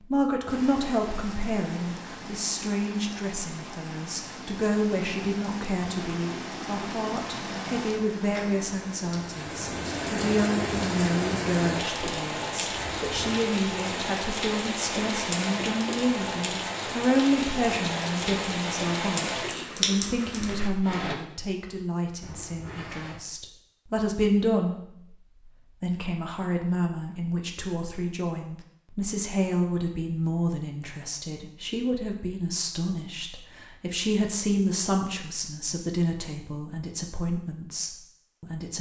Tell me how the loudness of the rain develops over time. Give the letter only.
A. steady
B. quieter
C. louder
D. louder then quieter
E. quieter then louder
C.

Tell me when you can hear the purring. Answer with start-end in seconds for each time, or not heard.
not heard.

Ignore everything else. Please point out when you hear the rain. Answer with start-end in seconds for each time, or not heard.
0.0-21.1.